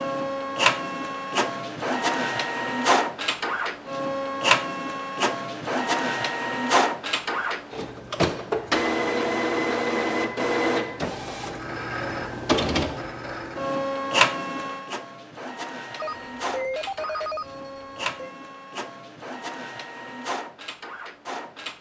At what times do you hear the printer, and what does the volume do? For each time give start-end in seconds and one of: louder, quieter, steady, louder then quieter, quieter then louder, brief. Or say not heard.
0.0-21.7 quieter.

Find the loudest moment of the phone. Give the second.
17 s.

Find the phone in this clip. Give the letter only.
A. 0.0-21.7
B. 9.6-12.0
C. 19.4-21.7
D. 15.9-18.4
D.